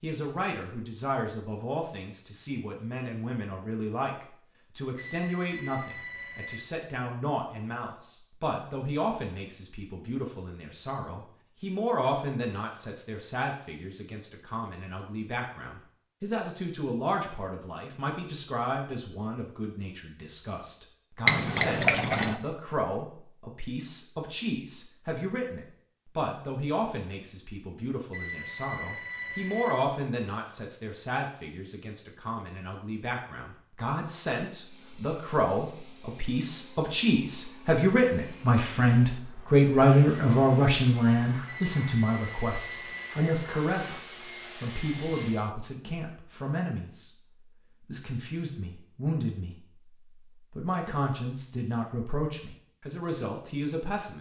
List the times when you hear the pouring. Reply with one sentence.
You can hear the pouring from 21.2 to 22.4 s.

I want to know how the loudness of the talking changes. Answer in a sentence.
The volume of the talking goes up, then down.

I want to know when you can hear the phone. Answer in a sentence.
You can hear the phone from 5.0 to 6.6 s, from 28.1 to 29.8 s and from 41.5 to 43.1 s.